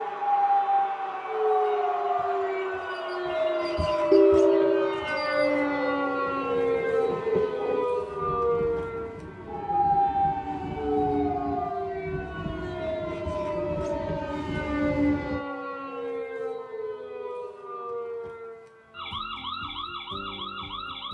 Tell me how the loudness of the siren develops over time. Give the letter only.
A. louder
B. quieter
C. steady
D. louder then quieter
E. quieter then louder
B.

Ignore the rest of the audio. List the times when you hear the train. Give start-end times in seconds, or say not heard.
0.0-15.4.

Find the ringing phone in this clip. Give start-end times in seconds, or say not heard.
4.1-5.0.